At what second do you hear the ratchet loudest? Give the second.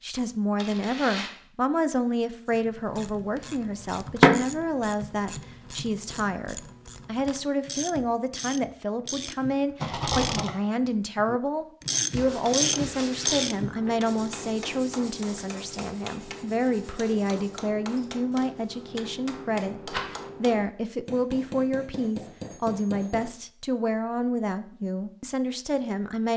4 s.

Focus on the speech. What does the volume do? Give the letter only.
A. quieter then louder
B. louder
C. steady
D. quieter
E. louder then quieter
C.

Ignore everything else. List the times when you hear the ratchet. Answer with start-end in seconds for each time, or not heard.
2.5-10.4, 11.2-13.8.